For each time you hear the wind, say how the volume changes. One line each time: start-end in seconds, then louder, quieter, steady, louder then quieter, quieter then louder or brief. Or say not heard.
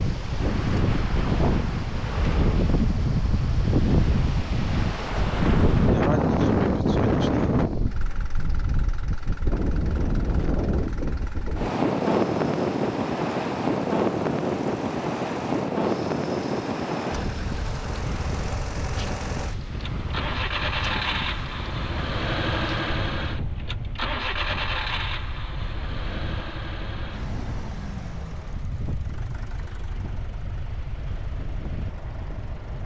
0.0-32.8 quieter.